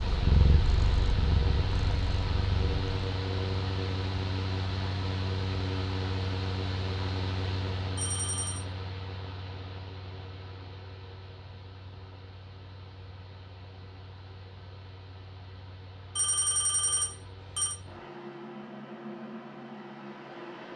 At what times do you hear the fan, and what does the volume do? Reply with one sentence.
The fan can be heard from 0.0 to 20.7 s, getting quieter then louder.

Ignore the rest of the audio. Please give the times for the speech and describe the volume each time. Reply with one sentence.
You can't hear the speech here.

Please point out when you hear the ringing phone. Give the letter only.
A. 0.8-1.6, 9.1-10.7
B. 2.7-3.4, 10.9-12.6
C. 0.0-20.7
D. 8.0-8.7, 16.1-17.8
D.